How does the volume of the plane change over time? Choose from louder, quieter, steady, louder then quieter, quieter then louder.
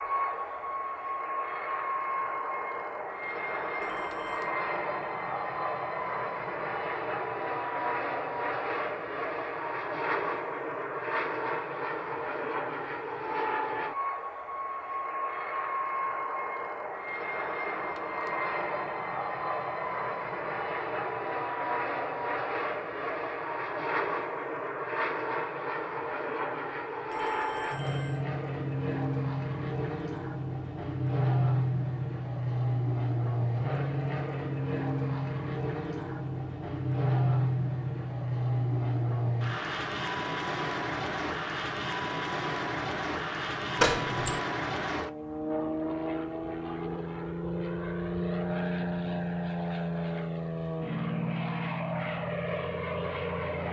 steady.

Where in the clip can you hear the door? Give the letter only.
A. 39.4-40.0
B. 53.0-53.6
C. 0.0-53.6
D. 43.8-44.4
D.